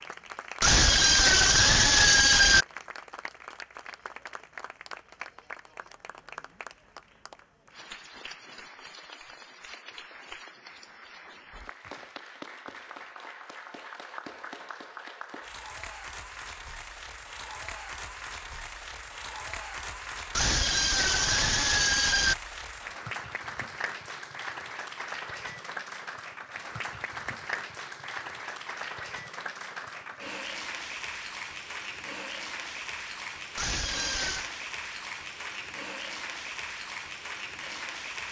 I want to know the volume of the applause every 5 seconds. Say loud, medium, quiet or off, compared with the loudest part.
medium, medium, medium, loud, loud, loud, loud, loud.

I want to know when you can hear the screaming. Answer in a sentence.
The screaming can be heard from 0.6 to 2.6 s, from 20.3 to 22.4 s and from 33.5 to 34.5 s.